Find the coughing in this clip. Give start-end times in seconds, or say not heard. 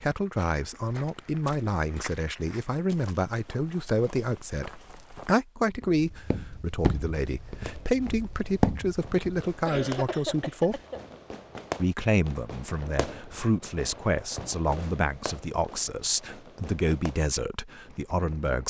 9.7-11.2.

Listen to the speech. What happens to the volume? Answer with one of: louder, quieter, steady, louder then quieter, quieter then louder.
steady.